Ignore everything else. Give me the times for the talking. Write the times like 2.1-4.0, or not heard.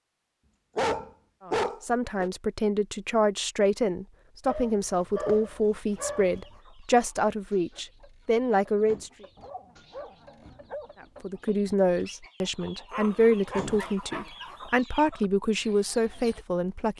1.4-9.1, 11.0-16.9.